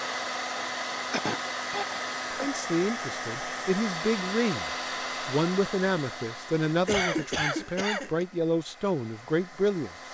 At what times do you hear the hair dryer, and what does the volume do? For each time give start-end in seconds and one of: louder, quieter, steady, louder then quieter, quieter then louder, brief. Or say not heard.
0.0-10.0 quieter.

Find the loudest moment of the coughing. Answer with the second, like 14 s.
7 s.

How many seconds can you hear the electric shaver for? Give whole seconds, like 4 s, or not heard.
not heard.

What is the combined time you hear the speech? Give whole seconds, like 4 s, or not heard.
8 s.